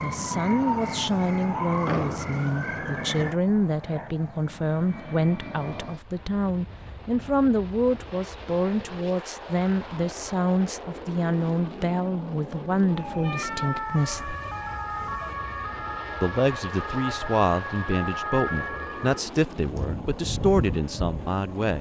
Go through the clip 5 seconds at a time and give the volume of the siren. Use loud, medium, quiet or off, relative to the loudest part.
loud, off, loud, loud, medium.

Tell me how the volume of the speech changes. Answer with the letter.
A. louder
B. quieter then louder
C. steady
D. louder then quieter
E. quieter
C.